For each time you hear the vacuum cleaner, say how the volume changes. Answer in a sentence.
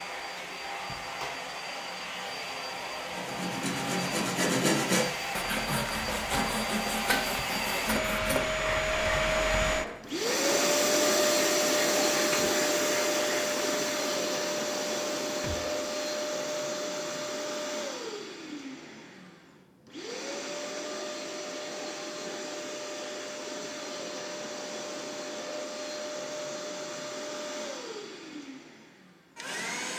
You can hear the vacuum cleaner from 0.0 to 29.9 s, getting louder then quieter.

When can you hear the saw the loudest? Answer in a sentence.
The loudest moment of the saw is at 5 seconds.